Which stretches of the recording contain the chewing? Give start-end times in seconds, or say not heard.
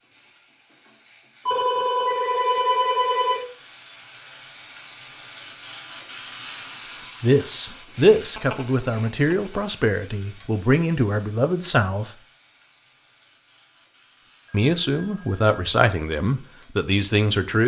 not heard.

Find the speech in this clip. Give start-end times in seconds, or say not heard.
7.0-12.2, 14.5-17.6.